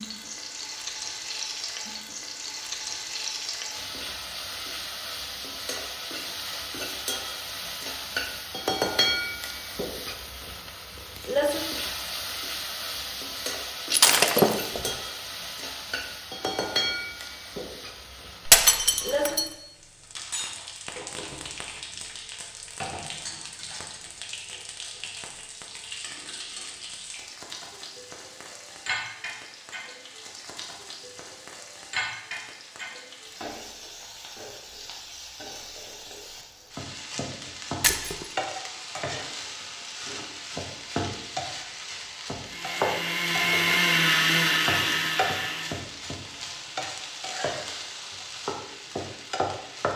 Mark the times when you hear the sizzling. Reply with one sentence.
The sizzling can be heard from 0.0 to 49.9 s.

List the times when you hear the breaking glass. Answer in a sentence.
You can hear the breaking glass from 13.9 to 14.9 s, from 18.4 to 19.5 s and from 37.8 to 38.2 s.